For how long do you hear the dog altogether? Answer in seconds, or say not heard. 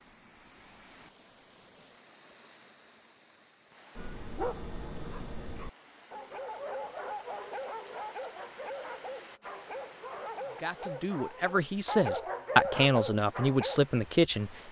10 s.